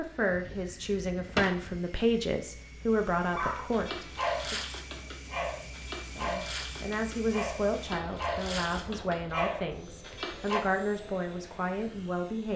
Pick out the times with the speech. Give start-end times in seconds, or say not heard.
0.0-4.5, 6.2-12.5.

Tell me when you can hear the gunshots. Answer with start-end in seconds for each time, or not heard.
0.2-1.9.